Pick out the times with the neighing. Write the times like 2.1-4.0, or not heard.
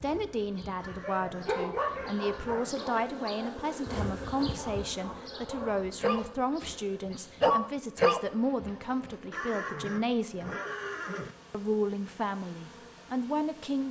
0.8-2.8, 9.3-11.3.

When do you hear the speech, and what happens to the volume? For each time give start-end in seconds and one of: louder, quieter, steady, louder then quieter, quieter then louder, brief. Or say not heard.
0.0-10.6 steady
11.5-13.8 brief.